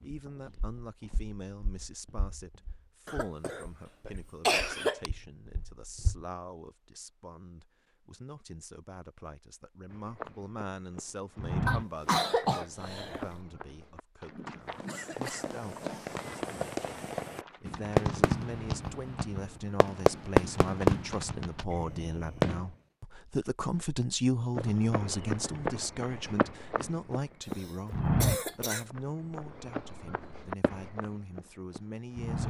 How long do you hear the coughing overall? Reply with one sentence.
The coughing can be heard for 5 seconds in total.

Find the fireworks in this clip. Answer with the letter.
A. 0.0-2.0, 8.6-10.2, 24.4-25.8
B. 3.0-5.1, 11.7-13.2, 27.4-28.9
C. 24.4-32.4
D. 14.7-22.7
D.